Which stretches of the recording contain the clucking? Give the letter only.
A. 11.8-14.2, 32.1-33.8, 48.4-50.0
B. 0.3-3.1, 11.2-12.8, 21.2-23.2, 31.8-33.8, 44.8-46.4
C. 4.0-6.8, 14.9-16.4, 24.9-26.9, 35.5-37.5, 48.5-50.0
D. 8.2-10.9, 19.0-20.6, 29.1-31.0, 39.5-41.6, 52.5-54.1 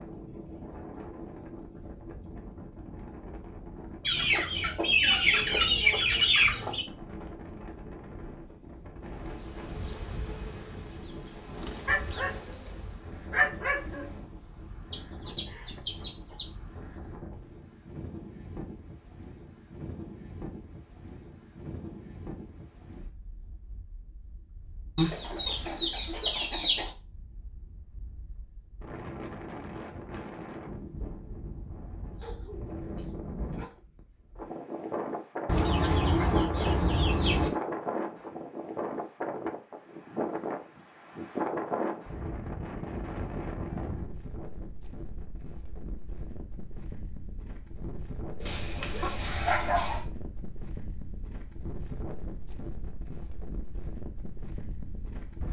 C.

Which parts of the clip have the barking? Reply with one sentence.
You can hear the barking from 11.8 to 14.2 s, from 32.1 to 33.8 s and from 48.4 to 50.0 s.